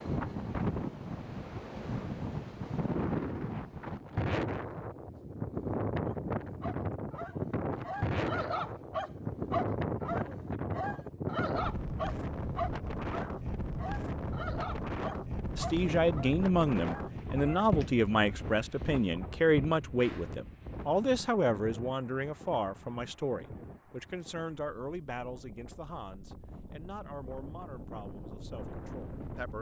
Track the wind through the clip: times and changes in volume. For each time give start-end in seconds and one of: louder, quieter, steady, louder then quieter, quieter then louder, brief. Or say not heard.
0.0-29.5 quieter.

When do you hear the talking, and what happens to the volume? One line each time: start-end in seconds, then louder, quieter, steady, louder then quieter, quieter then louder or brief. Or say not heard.
15.6-29.5 quieter.